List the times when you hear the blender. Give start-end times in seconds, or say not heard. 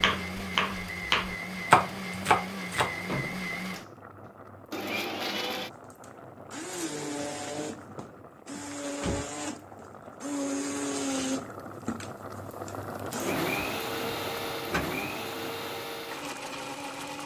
0.0-17.2.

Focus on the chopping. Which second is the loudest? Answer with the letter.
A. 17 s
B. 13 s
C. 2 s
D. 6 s
C.